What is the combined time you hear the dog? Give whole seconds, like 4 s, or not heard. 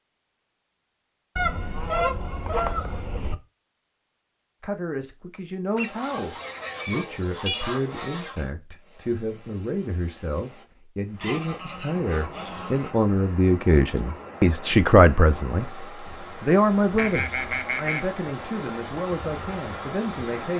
not heard.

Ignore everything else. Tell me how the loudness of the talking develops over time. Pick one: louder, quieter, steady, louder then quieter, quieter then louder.
louder then quieter.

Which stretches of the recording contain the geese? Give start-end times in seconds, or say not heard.
1.4-3.4, 5.8-8.5, 11.2-12.9, 16.8-18.1.